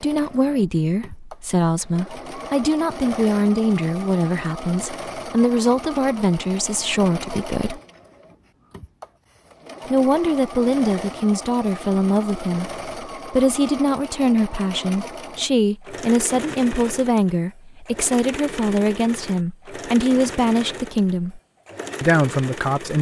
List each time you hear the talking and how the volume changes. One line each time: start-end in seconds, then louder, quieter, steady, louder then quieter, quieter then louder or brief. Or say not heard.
0.0-7.8 steady
9.9-21.4 steady
22.0-22.9 brief.